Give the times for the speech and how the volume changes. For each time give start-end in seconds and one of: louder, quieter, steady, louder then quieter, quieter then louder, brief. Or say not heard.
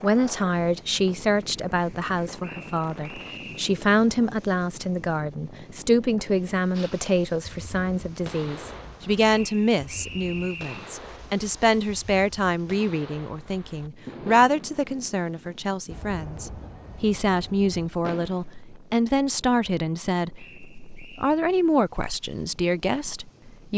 0.0-23.7 steady.